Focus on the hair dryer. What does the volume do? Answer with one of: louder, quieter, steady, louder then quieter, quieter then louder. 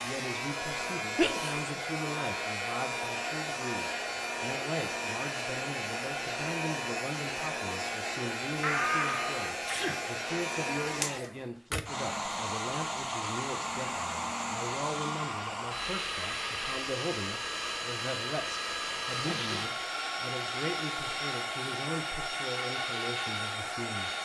steady.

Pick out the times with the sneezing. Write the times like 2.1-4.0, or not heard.
1.1-1.6, 8.6-10.1, 19.2-19.7.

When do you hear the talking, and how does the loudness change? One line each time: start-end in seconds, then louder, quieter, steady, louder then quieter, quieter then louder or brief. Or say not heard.
0.0-24.1 steady.